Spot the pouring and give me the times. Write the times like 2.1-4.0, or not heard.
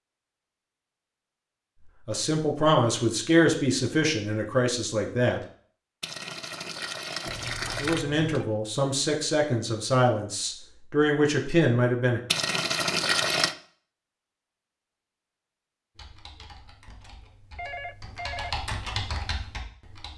6.0-8.1, 12.3-13.6.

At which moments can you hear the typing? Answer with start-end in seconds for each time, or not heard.
15.9-20.1.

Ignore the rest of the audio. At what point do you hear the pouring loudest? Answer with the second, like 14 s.
13 s.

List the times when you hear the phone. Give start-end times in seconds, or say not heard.
7.2-8.4, 17.6-18.6.